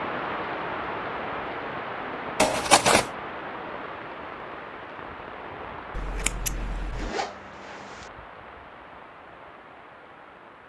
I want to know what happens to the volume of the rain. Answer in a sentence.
The volume of the rain goes down.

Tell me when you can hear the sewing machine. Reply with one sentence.
The sewing machine can't be heard in this clip.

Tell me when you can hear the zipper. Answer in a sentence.
You can hear the zipper from 6.9 to 8.1 s.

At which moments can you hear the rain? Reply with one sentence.
The rain can be heard from 0.0 to 10.6 s.